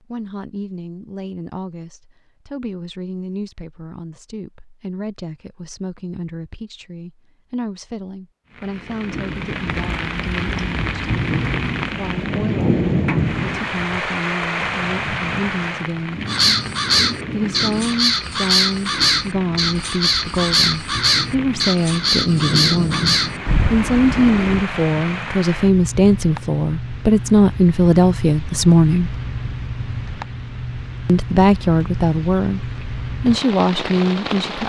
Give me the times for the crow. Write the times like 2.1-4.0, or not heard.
16.2-24.6.